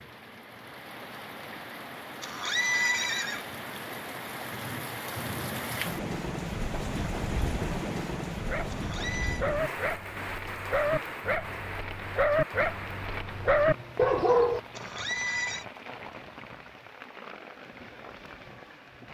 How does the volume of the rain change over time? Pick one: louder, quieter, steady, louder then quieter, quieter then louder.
louder then quieter.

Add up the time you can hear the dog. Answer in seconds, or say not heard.
6 s.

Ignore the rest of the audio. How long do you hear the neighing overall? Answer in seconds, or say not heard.
3 s.